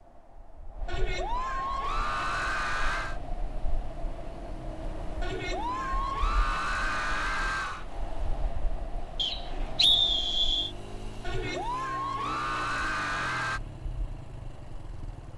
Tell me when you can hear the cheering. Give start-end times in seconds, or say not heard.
0.8-3.2, 5.2-7.8, 11.2-13.6.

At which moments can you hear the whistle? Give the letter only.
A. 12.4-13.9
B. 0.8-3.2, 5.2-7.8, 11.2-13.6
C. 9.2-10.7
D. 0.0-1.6
C.